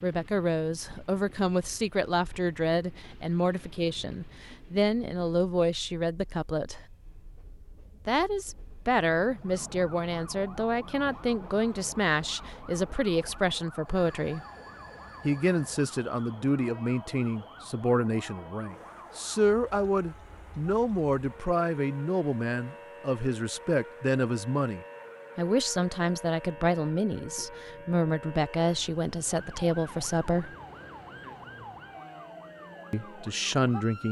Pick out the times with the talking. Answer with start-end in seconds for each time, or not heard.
0.0-6.8, 8.1-14.4, 15.2-30.5, 32.9-34.0.